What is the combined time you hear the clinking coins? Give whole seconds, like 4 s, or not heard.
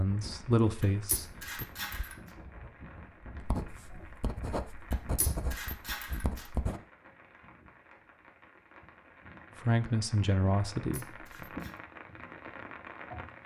4 s.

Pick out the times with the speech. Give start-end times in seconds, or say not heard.
0.0-1.6, 9.6-11.2.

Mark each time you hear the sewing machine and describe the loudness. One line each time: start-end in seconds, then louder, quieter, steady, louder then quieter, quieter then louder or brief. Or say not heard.
not heard.